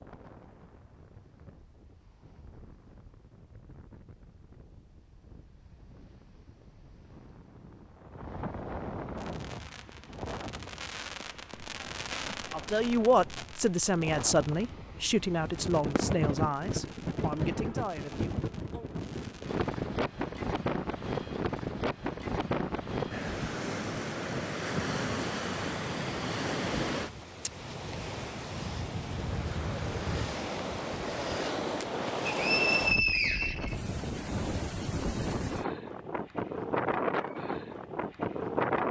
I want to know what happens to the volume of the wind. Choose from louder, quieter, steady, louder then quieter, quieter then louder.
louder.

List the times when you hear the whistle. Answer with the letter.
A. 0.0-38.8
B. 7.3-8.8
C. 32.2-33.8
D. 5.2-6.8
C.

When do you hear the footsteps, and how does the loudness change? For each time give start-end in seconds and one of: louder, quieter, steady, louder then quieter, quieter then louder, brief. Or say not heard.
not heard.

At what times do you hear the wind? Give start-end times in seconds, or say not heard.
0.0-38.8.